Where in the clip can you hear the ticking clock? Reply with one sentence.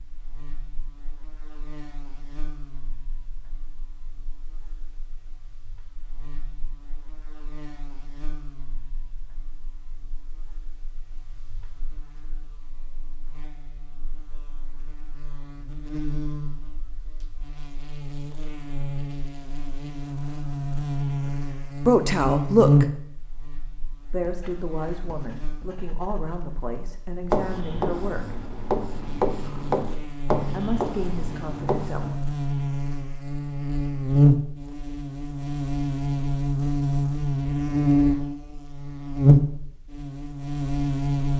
You can't hear the ticking clock here.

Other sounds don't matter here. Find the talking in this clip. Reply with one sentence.
You can hear the talking from 21.5 to 22.9 s, from 24.1 to 28.4 s and from 30.5 to 32.2 s.